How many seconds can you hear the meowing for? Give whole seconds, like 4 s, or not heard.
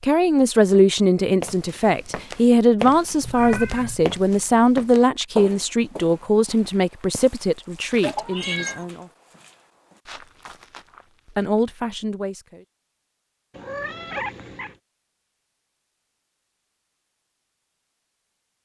3 s.